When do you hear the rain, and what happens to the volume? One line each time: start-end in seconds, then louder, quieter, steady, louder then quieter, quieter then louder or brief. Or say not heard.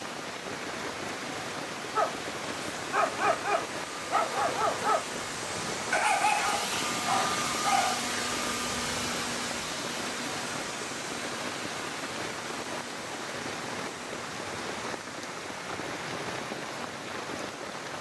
0.0-17.9 steady.